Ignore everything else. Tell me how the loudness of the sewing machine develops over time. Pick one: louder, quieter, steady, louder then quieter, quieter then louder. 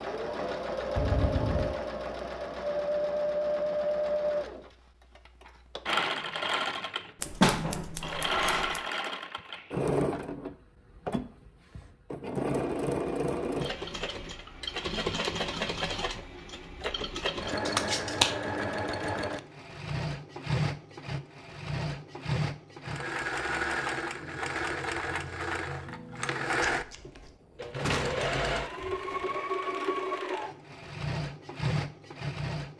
steady.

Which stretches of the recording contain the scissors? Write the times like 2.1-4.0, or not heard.
7.2-8.8, 17.6-18.4, 26.7-27.3.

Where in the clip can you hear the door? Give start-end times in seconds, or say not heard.
0.9-1.8, 27.8-29.4.